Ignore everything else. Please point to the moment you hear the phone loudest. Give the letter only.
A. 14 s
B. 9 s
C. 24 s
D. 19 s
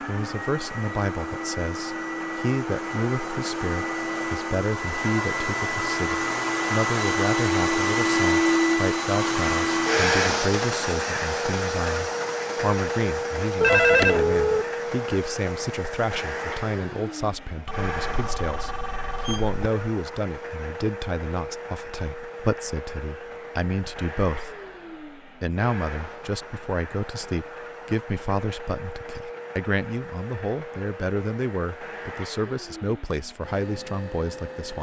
A.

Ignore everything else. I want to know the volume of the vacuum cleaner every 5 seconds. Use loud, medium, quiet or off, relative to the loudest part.
medium, loud, loud, medium, quiet, quiet, quiet.